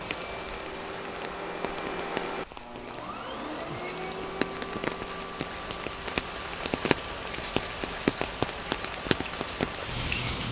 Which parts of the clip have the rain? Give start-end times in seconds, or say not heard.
0.0-10.4.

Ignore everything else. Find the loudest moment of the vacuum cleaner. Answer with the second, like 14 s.
2 s.